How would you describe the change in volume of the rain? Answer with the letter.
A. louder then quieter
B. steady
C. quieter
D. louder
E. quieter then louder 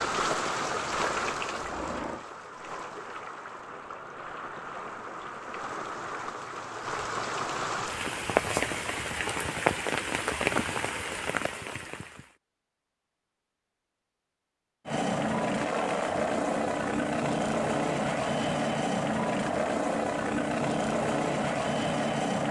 E.